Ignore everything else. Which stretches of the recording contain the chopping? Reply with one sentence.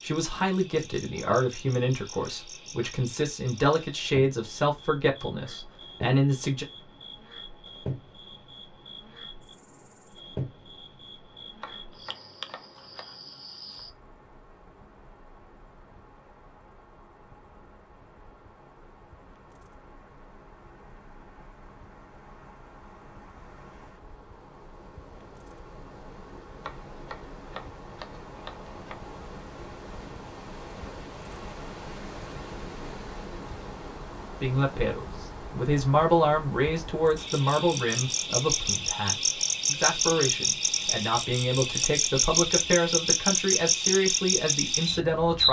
The chopping can be heard from 11.6 to 13.2 s and from 26.6 to 28.9 s.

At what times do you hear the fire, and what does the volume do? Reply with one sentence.
The fire can't be heard in this clip.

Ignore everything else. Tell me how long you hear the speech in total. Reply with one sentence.
The speech can be heard for 18 seconds in total.